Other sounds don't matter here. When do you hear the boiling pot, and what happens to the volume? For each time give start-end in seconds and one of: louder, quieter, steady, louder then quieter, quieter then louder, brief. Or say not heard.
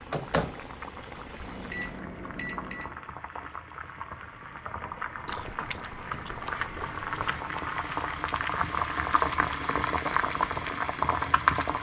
0.0-11.7 louder.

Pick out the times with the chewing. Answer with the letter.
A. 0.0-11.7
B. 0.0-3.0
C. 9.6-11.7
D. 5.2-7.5
D.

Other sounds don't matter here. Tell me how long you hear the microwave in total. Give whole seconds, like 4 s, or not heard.
3 s.